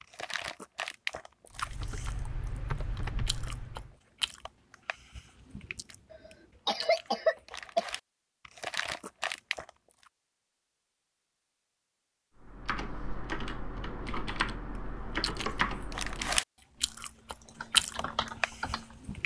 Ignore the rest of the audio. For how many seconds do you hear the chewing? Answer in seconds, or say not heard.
14 s.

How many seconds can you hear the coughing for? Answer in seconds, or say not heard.
2 s.